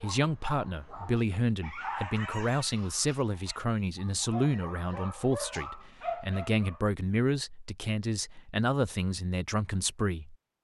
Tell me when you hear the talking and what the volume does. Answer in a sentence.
The talking can be heard from 0.0 to 10.3 s, at a steady volume.